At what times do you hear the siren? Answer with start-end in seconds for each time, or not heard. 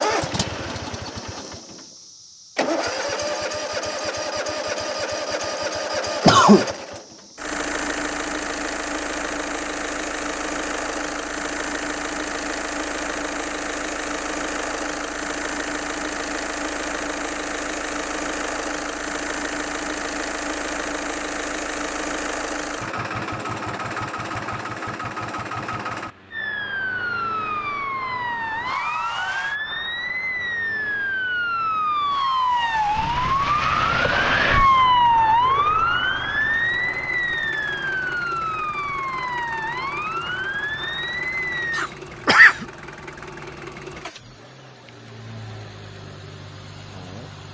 26.3-41.9.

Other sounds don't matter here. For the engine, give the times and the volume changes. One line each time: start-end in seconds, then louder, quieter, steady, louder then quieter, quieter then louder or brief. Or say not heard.
0.0-47.4 quieter.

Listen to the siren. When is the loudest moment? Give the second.
35 s.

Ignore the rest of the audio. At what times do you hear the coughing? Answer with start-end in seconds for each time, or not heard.
6.2-6.7, 41.8-42.6.